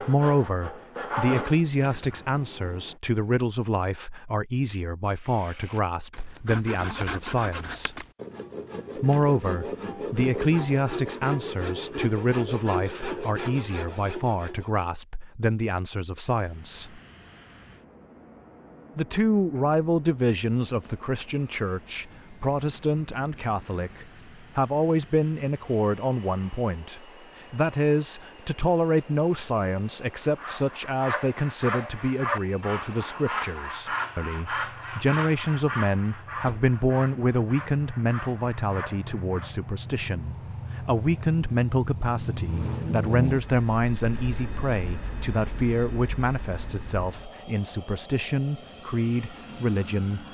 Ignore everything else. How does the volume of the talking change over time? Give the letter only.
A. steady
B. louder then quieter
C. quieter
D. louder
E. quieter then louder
A.